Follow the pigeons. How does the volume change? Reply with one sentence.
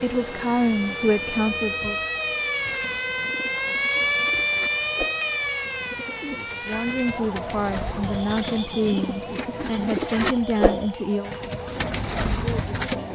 The loudness of the pigeons goes up.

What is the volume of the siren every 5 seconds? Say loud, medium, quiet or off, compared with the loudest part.
loud, medium, quiet.